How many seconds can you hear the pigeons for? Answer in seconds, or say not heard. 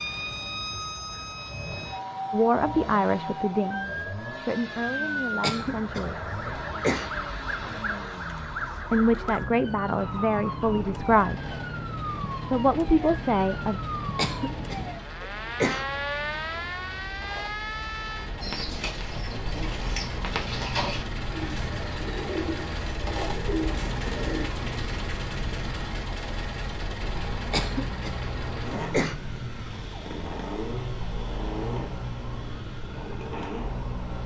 6 s.